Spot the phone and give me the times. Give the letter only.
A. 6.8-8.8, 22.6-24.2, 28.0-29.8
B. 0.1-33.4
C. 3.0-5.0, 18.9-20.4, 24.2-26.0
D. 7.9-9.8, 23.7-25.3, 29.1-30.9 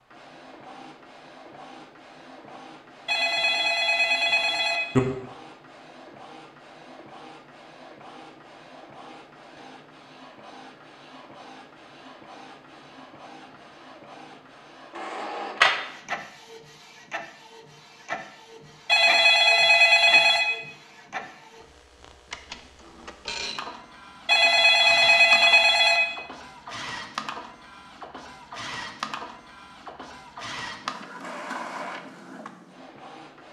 C.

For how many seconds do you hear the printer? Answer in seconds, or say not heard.
33 s.